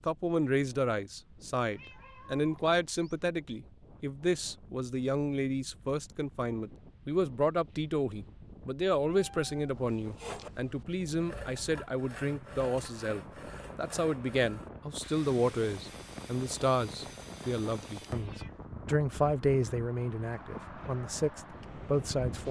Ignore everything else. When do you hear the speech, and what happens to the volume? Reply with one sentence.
The speech can be heard from 0.1 to 22.4 s, at a steady volume.